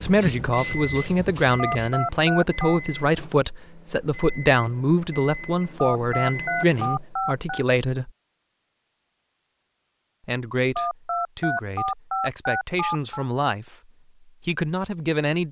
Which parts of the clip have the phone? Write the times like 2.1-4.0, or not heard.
1.6-2.8, 5.8-7.7, 10.8-13.2.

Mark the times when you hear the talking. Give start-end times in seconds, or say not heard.
0.0-8.1, 10.2-15.4.